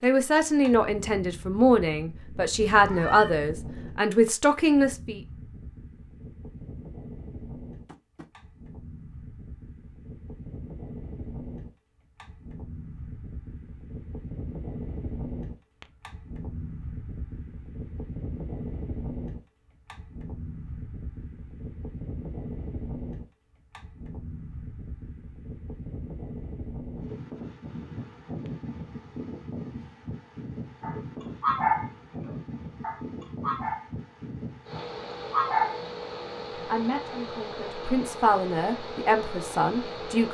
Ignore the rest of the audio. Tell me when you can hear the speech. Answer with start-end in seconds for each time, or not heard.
0.0-5.2, 36.6-40.2.